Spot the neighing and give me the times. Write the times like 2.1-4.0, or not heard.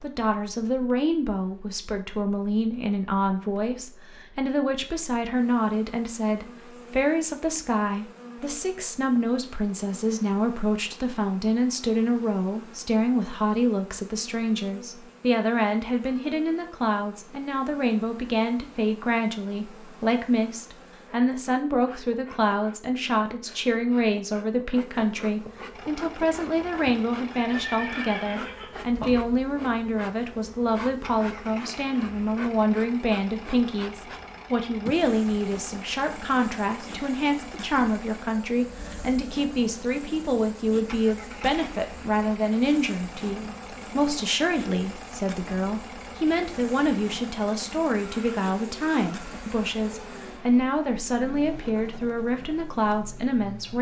27.5-29.1.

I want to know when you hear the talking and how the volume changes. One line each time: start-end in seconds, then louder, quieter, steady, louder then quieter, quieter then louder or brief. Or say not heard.
0.0-53.7 steady.